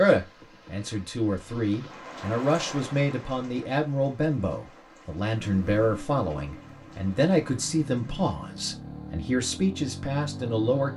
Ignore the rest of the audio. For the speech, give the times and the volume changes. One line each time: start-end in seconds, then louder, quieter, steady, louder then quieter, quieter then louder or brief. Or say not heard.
0.0-10.9 steady.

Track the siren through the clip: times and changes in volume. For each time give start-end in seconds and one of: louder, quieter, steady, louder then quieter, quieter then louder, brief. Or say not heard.
not heard.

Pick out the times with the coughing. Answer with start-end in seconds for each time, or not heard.
not heard.